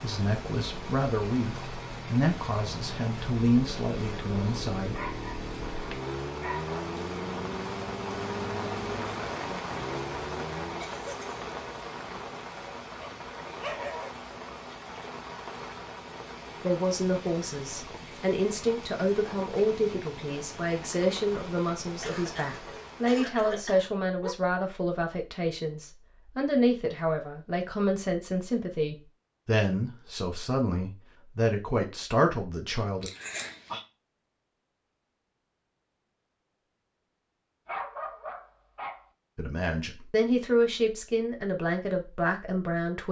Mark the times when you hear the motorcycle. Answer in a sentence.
You can hear the motorcycle from 0.0 to 10.8 s.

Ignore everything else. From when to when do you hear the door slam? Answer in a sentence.
You can't hear the door slam here.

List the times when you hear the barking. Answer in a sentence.
The barking can be heard from 4.9 to 6.8 s, from 12.9 to 14.1 s, from 22.6 to 24.4 s and from 37.6 to 39.0 s.